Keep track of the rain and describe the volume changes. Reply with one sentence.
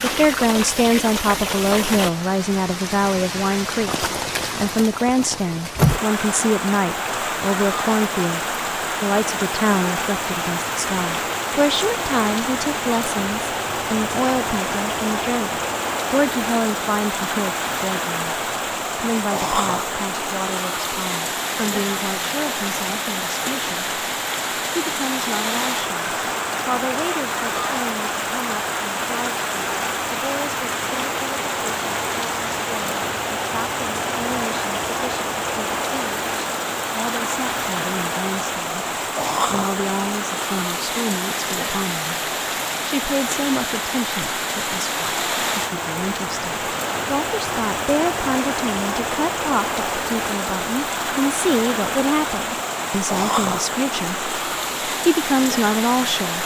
The loudness of the rain stays about the same.